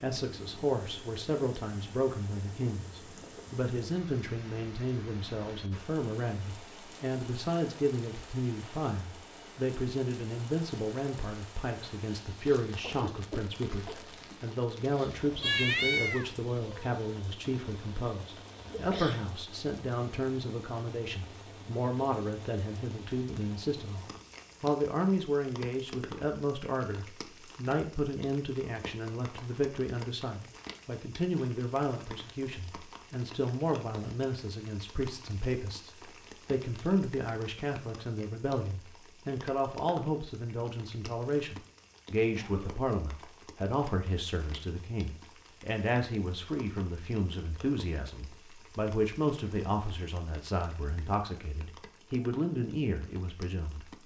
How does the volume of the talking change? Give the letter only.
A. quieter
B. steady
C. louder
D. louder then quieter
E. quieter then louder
B.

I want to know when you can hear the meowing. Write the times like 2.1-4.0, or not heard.
15.4-16.9.